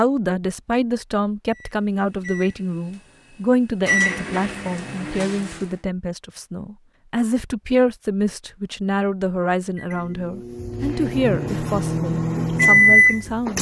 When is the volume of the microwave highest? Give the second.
13 s.